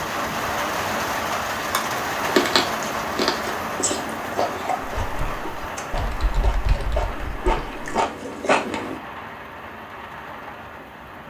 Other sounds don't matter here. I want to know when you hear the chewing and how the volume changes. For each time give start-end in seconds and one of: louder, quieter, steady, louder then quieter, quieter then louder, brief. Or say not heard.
1.6-9.0 quieter then louder.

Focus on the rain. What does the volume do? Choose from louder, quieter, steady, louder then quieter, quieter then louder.
quieter.